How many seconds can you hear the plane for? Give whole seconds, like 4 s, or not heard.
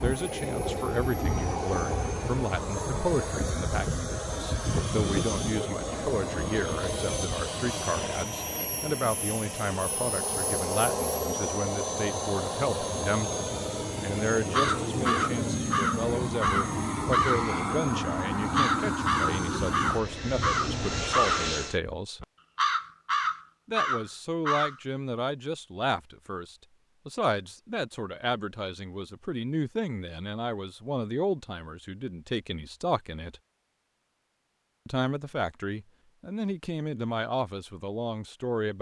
22 s.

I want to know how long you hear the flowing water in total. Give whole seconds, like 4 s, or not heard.
not heard.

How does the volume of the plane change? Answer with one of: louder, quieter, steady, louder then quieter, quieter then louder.
steady.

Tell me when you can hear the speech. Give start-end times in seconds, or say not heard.
0.0-22.2, 23.6-33.4, 34.9-38.7.